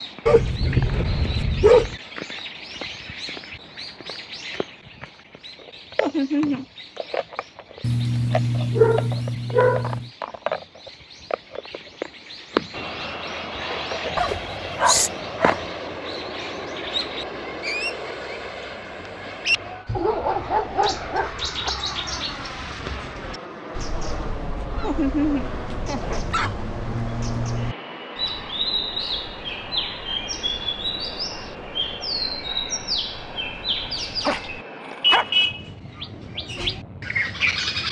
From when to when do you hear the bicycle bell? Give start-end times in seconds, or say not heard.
not heard.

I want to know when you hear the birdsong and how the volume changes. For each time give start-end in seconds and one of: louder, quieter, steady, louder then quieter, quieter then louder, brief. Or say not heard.
0.0-37.8 louder.